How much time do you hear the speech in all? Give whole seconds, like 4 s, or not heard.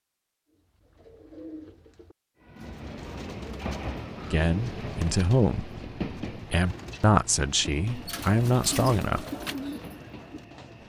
5 s.